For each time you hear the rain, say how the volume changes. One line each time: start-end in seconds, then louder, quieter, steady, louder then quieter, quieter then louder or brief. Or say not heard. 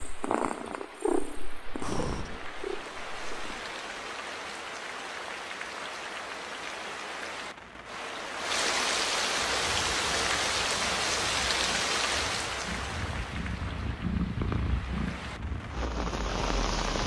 0.0-17.0 louder then quieter.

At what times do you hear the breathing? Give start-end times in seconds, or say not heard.
1.8-2.3.